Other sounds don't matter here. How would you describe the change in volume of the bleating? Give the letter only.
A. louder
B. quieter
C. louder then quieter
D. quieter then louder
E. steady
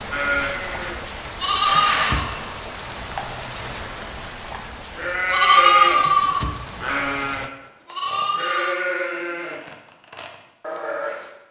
C.